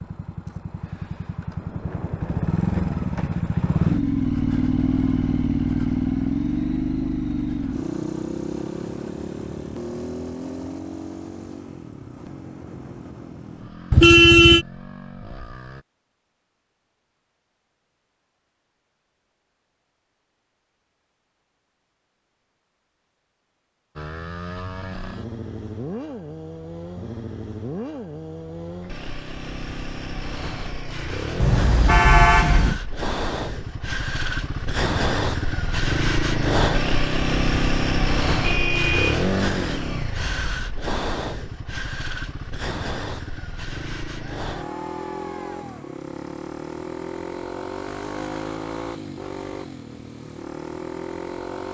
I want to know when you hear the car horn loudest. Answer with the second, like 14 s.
14 s.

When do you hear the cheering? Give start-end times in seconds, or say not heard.
44.5-46.0.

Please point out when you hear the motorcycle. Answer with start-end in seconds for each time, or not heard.
0.0-15.8, 23.9-51.6.